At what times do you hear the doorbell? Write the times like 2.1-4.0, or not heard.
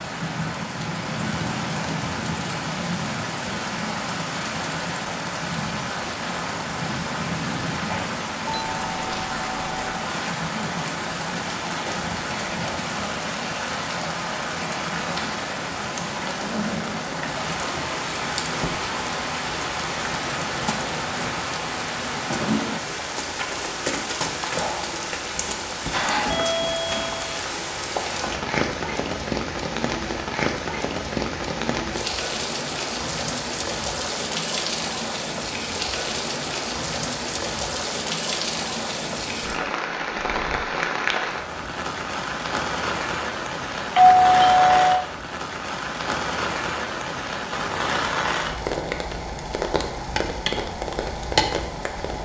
8.4-9.8, 26.1-27.4, 43.9-45.1.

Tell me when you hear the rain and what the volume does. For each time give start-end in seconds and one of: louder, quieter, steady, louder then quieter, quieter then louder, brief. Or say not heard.
0.0-52.2 steady.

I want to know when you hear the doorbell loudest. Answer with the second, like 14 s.
44 s.